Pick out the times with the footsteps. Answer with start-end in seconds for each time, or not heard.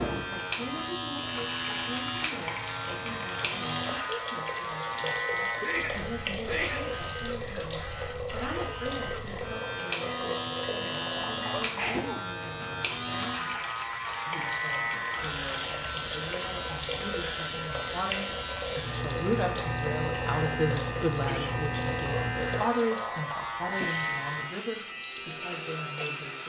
not heard.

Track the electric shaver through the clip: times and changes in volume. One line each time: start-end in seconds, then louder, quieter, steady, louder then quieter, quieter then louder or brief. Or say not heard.
0.0-26.4 steady.